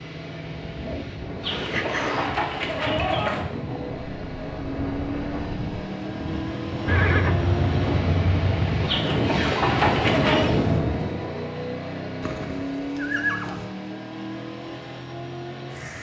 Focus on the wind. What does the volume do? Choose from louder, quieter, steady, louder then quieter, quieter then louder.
louder.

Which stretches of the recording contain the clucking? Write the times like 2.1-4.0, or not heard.
1.4-3.5, 8.8-10.5.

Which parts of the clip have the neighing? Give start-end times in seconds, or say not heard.
1.5-2.4, 6.8-8.9, 12.2-13.7.